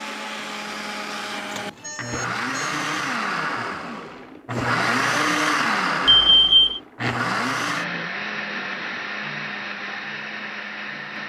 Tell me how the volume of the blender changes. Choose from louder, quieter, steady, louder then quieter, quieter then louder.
louder then quieter.